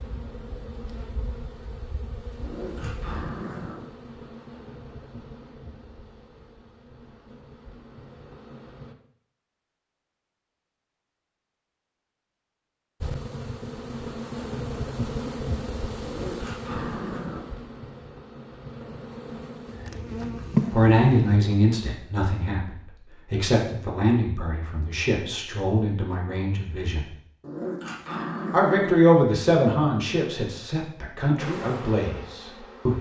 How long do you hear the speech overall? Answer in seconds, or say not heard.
11 s.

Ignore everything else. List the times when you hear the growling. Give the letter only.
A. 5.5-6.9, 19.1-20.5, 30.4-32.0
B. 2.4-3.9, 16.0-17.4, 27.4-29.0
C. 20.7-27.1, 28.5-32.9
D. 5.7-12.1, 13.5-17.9
B.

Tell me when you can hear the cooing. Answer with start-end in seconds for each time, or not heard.
not heard.